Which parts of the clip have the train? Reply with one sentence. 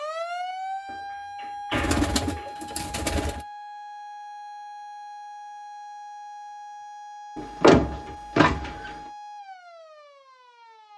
The train can't be heard in this clip.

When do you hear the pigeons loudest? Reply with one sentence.
The volume of the pigeons peaks at 2 seconds.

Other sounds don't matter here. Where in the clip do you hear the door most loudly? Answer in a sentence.
The volume of the door peaks at 8 seconds.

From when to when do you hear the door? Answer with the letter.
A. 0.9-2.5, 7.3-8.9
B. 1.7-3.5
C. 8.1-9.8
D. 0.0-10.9
A.